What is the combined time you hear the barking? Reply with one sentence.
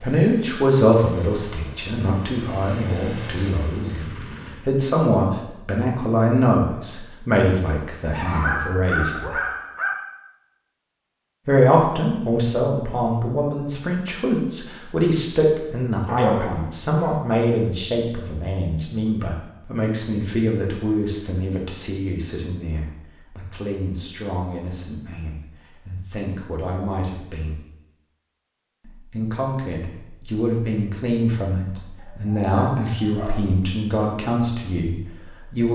You can hear the barking for 4 seconds altogether.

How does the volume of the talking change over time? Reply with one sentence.
The loudness of the talking goes down, then up.